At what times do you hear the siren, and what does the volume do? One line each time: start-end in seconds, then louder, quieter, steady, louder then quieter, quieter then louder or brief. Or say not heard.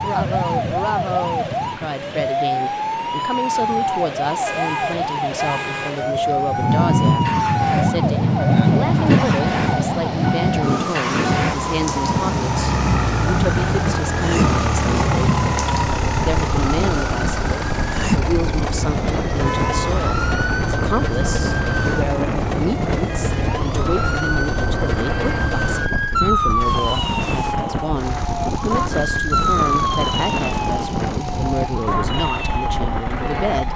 0.0-33.7 steady.